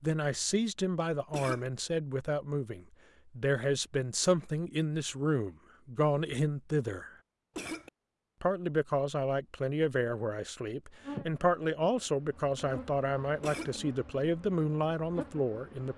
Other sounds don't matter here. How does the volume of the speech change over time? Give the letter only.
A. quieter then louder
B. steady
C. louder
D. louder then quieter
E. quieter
B.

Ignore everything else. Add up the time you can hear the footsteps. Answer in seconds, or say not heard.
not heard.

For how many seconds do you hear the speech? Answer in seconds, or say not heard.
15 s.